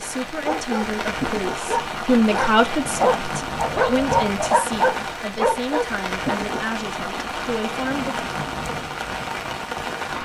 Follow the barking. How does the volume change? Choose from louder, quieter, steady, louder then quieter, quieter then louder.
louder.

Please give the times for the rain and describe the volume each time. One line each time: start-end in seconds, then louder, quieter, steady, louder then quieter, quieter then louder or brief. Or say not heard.
0.0-10.2 steady.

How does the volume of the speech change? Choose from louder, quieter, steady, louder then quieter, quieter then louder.
louder then quieter.